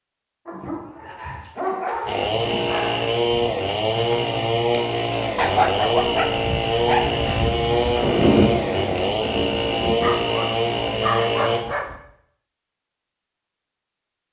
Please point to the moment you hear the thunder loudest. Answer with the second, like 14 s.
8 s.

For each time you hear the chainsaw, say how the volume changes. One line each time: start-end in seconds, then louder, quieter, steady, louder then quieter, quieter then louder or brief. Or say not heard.
2.0-11.6 steady.